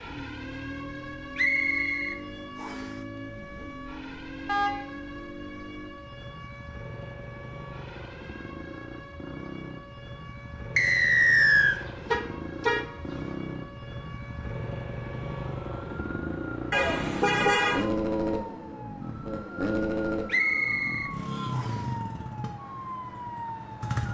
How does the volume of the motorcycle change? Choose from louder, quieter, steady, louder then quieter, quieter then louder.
louder.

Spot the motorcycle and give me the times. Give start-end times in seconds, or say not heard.
0.0-24.0.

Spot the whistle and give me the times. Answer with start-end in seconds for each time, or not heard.
1.4-2.9, 10.8-11.8, 20.2-21.8.